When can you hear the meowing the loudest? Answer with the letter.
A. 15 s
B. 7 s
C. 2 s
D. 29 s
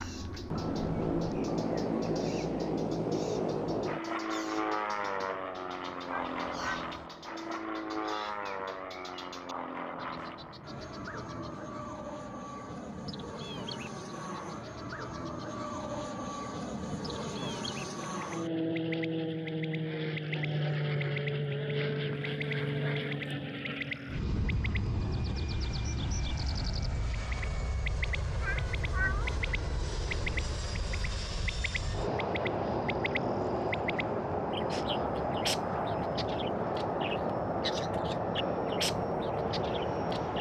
D.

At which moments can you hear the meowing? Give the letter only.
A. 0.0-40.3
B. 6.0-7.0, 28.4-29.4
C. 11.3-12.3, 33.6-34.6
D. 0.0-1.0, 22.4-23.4
B.